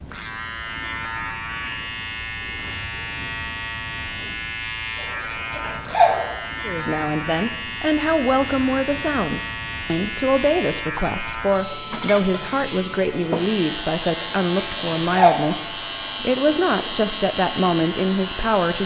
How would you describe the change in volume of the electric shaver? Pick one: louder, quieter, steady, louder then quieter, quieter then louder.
steady.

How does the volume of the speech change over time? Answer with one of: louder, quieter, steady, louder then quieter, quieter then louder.
steady.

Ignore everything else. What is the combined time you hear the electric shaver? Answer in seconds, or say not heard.
19 s.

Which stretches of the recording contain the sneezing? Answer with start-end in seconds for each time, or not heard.
5.0-6.3, 14.2-15.4.